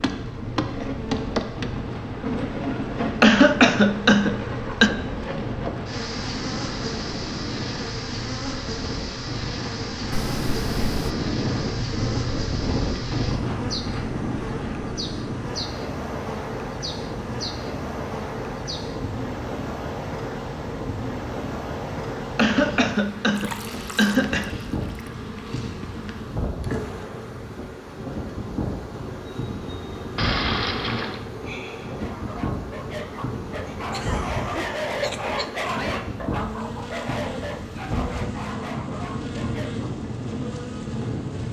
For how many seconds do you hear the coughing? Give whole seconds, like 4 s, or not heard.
6 s.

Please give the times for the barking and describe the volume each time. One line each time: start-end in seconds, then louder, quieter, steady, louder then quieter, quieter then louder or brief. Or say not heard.
31.9-39.9 louder then quieter.